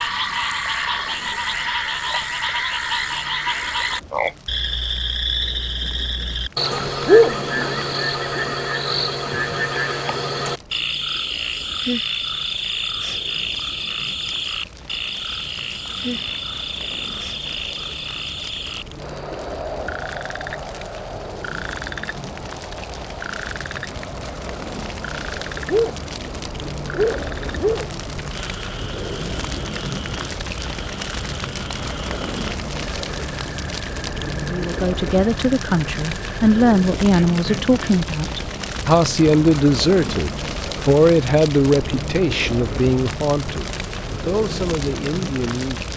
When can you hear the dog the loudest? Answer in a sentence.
The loudest moment of the dog is at 7 seconds.